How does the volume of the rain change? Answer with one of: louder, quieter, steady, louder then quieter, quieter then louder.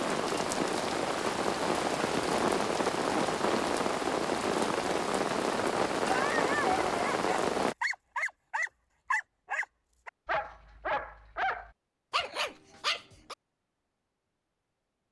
steady.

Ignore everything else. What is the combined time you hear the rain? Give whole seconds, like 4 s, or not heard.
8 s.